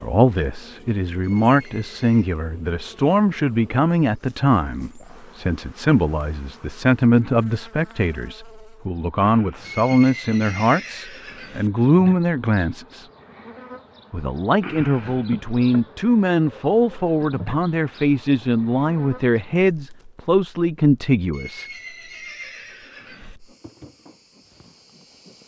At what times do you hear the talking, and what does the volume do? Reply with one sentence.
You can hear the talking from 0.0 to 13.1 s, at a steady volume; and from 14.1 to 21.6 s, at a steady volume.